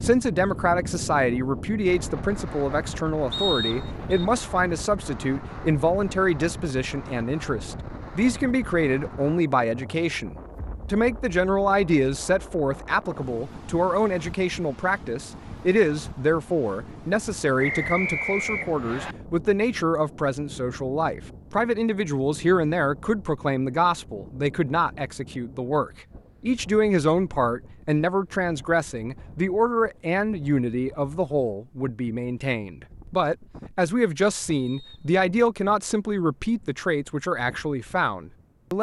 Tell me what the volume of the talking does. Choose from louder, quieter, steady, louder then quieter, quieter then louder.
steady.